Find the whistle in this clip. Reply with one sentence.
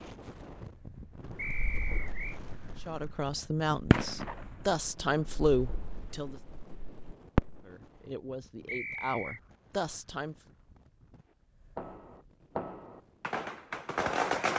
You can hear the whistle from 1.4 to 2.4 s and from 8.7 to 9.4 s.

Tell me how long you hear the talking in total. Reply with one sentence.
You can hear the talking for 6 seconds altogether.